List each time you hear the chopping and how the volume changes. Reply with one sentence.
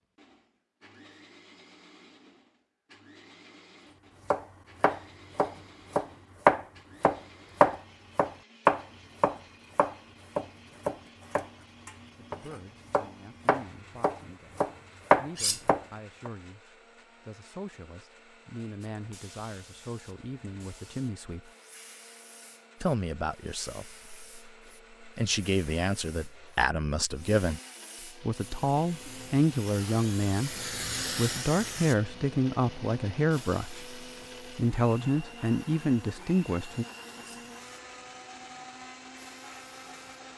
The chopping can be heard from 4.3 to 16.3 s, getting quieter then louder.